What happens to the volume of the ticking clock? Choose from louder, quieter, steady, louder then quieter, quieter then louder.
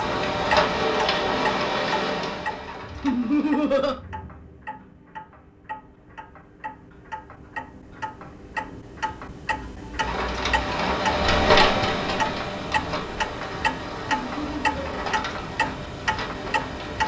quieter then louder.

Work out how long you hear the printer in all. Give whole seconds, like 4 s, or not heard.
11 s.